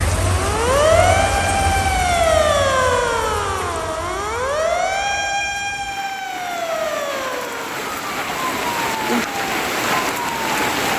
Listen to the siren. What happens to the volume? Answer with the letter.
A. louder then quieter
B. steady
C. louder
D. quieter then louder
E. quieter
E.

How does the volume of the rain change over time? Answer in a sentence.
The loudness of the rain goes down, then up.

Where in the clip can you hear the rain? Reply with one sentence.
The rain can be heard from 0.0 to 10.9 s.